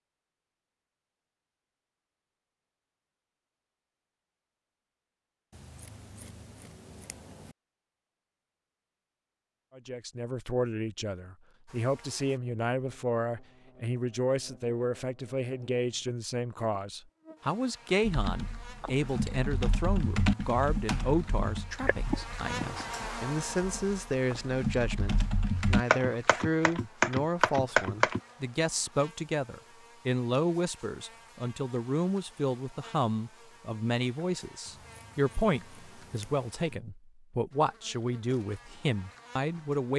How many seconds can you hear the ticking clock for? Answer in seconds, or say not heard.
not heard.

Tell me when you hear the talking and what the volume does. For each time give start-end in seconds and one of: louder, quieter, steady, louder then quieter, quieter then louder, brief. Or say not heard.
9.8-39.9 steady.